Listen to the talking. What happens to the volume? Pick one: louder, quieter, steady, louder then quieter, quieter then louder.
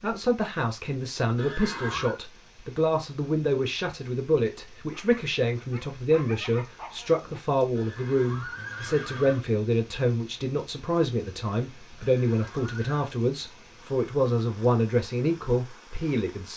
steady.